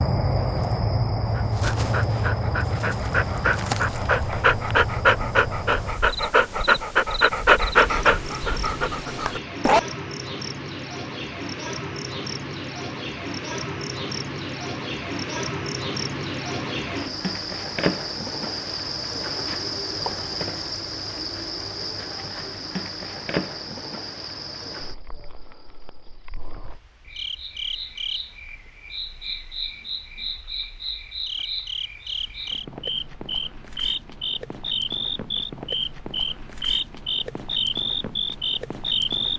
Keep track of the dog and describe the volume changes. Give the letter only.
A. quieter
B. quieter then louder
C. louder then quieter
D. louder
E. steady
C.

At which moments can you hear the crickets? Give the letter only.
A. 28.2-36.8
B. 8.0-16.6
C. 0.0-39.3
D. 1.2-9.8
C.